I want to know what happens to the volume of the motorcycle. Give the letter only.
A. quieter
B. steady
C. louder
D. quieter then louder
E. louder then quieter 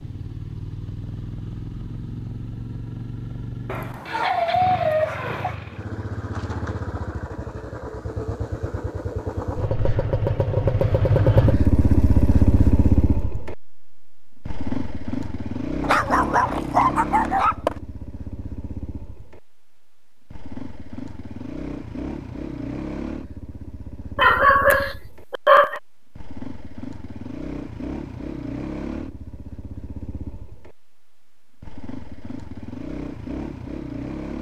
E.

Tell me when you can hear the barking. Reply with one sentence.
The barking can be heard from 3.6 to 5.5 s, from 15.8 to 17.8 s and from 24.1 to 25.8 s.